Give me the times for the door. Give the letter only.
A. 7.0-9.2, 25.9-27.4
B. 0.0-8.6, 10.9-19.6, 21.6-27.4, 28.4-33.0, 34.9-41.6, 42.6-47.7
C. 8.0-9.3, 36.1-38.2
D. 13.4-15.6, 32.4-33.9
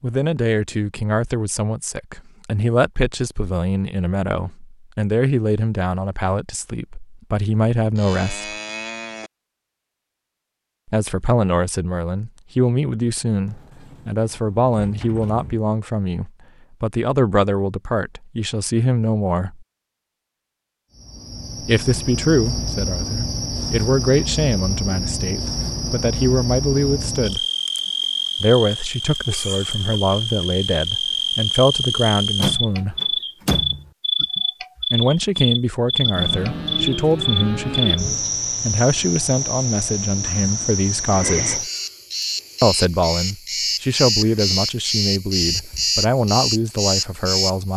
D.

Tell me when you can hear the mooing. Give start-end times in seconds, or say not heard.
8.0-9.3, 36.1-38.2.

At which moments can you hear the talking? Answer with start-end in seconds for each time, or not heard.
0.0-8.6, 10.9-19.6, 21.6-27.4, 28.4-33.0, 34.9-41.6, 42.6-47.7.